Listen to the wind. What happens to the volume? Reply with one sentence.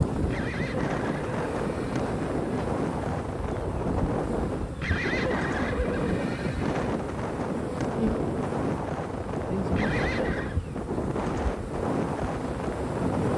The volume of the wind stays about the same.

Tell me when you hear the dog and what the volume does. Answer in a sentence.
You can't hear the dog here.